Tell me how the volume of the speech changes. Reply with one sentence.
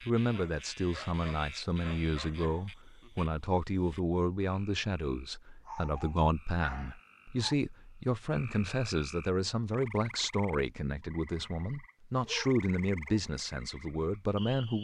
The loudness of the speech stays about the same.